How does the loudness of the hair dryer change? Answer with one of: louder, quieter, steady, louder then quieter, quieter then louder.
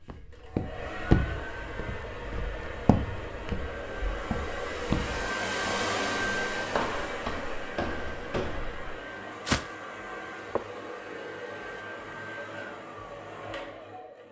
louder then quieter.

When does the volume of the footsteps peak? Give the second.
1 s.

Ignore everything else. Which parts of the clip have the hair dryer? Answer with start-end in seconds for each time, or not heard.
0.0-14.2.